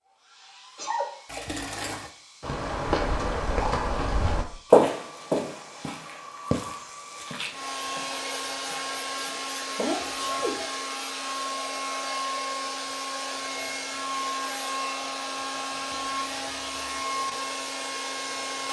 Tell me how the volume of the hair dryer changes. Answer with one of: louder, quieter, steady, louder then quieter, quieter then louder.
louder.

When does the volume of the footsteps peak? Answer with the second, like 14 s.
5 s.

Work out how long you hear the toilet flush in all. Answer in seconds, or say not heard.
3 s.